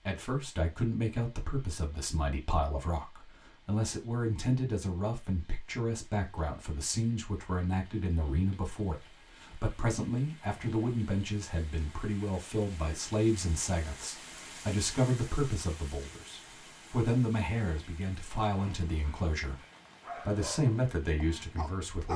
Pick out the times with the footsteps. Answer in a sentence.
You can't hear the footsteps here.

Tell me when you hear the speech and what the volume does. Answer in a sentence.
The speech can be heard from 0.1 to 19.6 s, at a steady volume; and briefly from 20.2 to 22.1 s.